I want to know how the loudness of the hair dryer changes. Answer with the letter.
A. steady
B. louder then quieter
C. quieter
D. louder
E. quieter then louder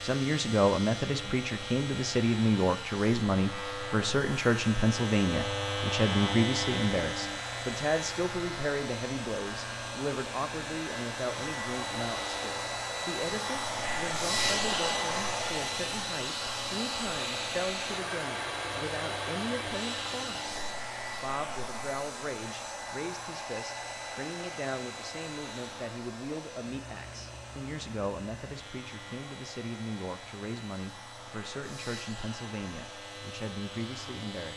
B.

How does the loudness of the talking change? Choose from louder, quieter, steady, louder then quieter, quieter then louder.
quieter.